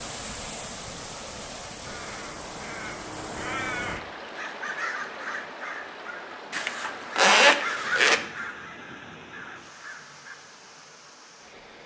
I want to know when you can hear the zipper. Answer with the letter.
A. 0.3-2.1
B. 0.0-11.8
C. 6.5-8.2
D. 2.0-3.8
C.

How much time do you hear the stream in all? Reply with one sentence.
The stream can be heard for 12 seconds in total.